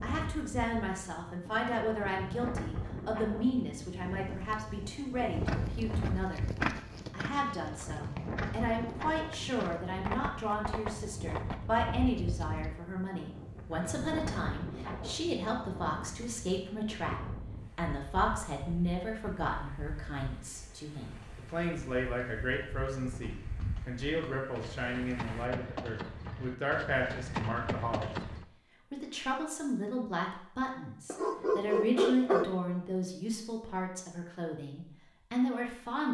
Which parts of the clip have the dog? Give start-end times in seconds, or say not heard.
31.1-32.5.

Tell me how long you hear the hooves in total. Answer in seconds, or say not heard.
15 s.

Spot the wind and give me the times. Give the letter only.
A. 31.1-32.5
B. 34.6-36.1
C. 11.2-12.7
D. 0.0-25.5
D.